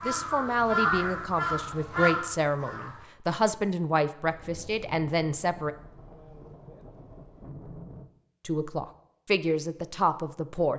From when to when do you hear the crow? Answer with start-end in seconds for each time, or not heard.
0.0-3.0.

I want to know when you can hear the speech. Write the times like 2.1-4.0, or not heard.
0.1-5.7, 8.4-10.7.